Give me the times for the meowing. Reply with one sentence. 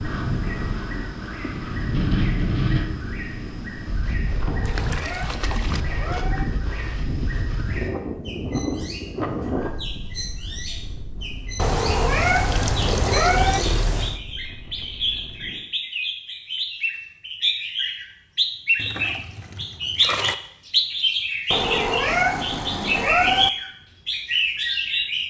The meowing can be heard from 4.5 to 6.5 s, from 11.6 to 13.6 s and from 21.5 to 23.5 s.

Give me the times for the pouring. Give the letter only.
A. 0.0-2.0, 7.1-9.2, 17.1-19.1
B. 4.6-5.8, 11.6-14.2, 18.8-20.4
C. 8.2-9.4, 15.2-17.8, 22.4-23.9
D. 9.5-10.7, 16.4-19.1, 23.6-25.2
B.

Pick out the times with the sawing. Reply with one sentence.
You can't hear the sawing here.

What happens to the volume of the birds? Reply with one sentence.
The loudness of the birds goes up.